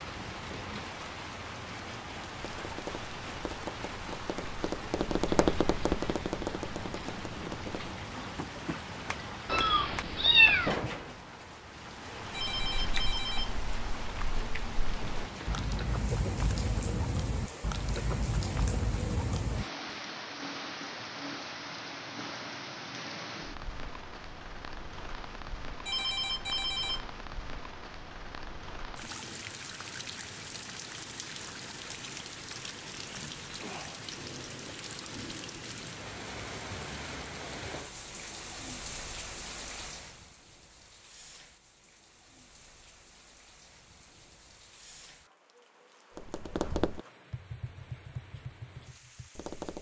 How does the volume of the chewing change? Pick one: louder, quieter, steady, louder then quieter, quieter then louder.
louder.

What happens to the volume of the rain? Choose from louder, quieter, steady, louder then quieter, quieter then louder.
quieter.